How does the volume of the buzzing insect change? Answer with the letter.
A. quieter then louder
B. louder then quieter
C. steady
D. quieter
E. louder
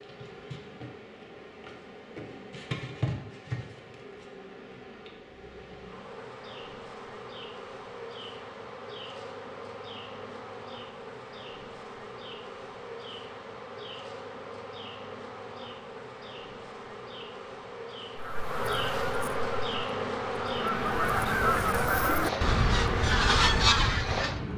E.